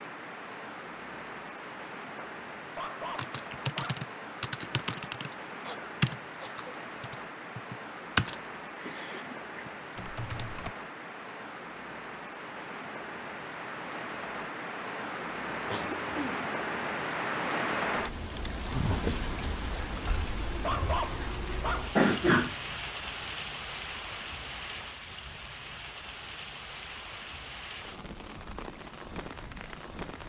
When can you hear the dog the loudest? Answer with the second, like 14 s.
21 s.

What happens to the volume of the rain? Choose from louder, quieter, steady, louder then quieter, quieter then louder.
louder then quieter.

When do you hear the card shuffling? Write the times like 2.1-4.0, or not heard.
not heard.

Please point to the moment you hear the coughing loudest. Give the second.
22 s.